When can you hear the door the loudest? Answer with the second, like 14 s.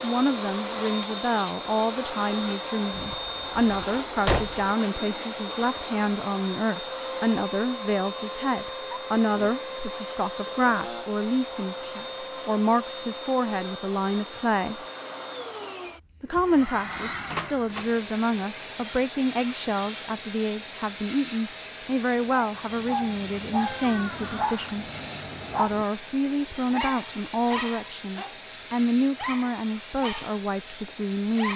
4 s.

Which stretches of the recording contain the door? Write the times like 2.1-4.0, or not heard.
2.9-4.7, 17.2-17.9, 23.6-24.8.